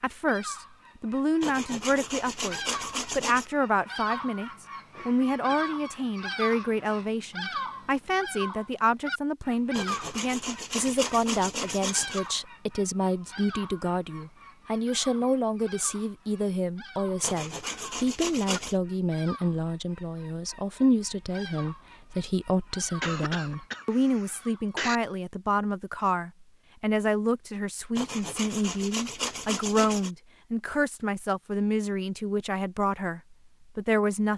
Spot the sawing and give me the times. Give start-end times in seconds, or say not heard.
1.4-3.5, 9.7-12.2, 17.2-18.8, 27.9-30.1.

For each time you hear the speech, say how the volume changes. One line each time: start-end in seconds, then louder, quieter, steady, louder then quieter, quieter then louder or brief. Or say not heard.
0.0-34.3 steady.